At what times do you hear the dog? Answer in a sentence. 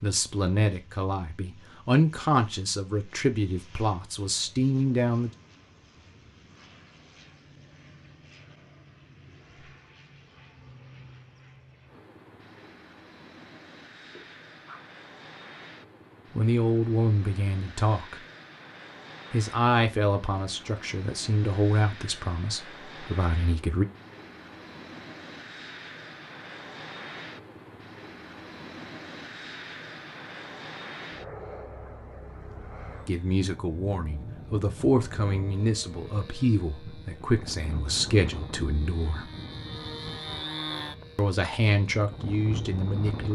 You can hear the dog from 14.1 to 14.9 s.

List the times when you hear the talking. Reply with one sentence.
You can hear the talking from 0.0 to 5.3 s, from 16.3 to 18.2 s, from 19.3 to 23.9 s, from 33.0 to 39.3 s and from 41.1 to 43.3 s.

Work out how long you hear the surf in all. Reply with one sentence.
The surf can't be heard in this clip.